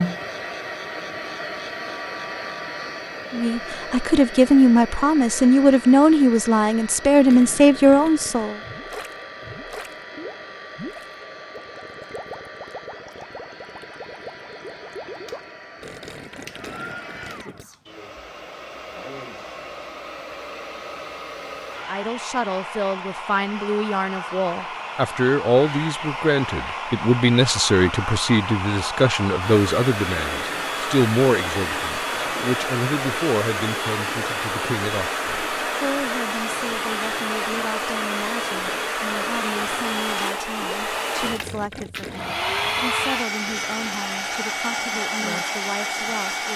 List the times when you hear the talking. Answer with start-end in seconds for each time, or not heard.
3.3-8.6, 21.8-46.5.